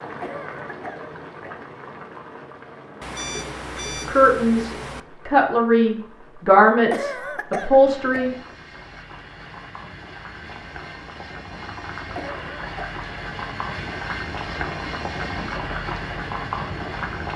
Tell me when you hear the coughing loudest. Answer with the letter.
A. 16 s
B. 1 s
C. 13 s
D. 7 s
D.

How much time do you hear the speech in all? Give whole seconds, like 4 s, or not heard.
4 s.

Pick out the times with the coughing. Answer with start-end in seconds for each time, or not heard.
0.2-1.6, 6.9-8.3, 12.2-12.9.